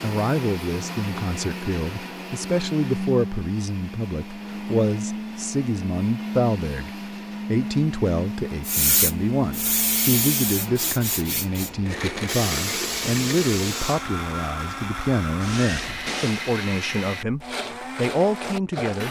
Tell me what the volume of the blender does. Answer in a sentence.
The loudness of the blender stays about the same.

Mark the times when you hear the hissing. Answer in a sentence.
You can hear the hissing from 8.7 to 16.5 s.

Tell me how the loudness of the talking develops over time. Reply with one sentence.
The loudness of the talking stays about the same.